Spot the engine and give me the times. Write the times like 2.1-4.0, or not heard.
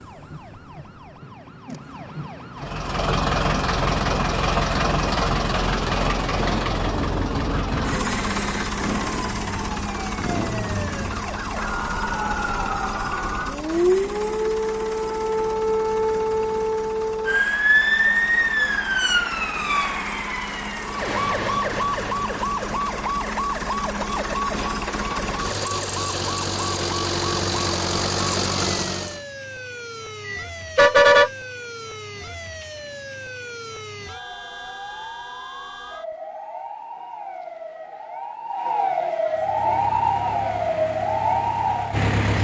2.5-29.2, 39.2-42.3.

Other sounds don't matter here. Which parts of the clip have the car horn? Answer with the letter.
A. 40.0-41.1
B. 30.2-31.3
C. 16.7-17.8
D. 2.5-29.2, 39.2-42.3
B.